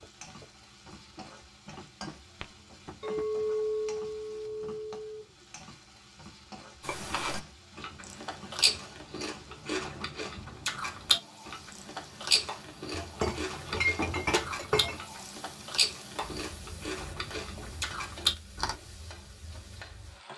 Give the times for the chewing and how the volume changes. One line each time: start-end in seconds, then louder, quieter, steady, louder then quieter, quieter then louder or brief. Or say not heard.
6.8-18.8 steady.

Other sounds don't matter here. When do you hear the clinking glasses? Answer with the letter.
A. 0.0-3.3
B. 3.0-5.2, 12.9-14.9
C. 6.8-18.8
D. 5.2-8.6
B.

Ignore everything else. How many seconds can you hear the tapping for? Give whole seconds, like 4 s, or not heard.
3 s.